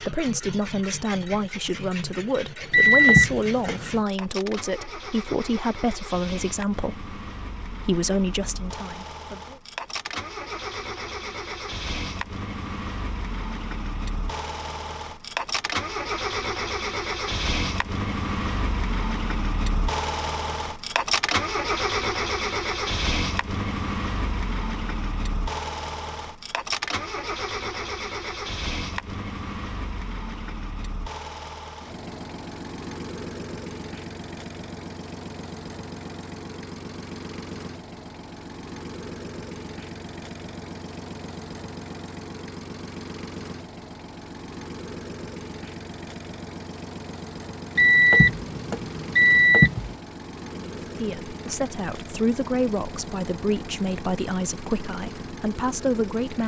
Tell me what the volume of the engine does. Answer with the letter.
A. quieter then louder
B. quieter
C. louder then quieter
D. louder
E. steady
C.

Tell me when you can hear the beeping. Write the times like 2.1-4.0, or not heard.
2.7-4.0, 47.8-50.0.